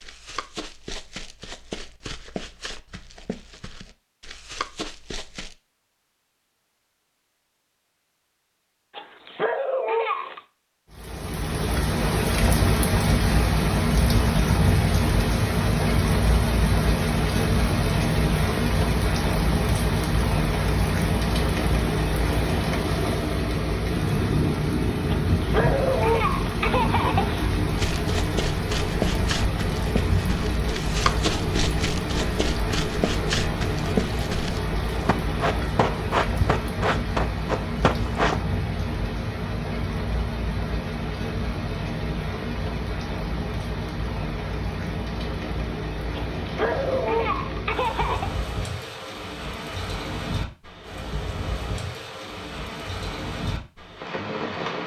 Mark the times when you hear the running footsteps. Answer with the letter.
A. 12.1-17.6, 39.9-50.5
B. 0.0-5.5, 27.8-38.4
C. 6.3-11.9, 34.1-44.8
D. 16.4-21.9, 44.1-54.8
B.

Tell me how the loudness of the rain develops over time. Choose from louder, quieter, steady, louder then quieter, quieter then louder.
quieter.